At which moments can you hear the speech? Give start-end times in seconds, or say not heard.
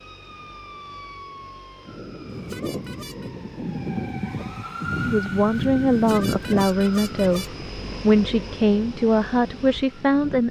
5.0-10.4.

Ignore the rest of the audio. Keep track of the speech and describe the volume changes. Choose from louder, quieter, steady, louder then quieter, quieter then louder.
steady.